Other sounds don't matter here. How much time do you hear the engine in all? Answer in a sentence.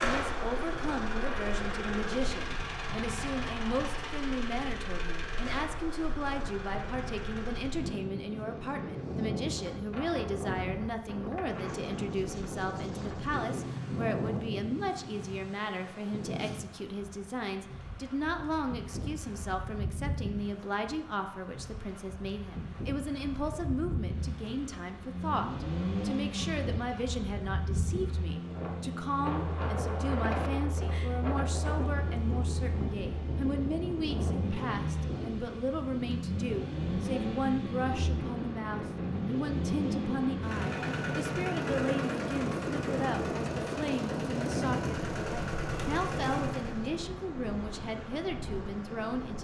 The engine can be heard for 31 seconds in total.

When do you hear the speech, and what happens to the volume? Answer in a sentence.
You can hear the speech from 0.0 to 49.3 s, at a steady volume.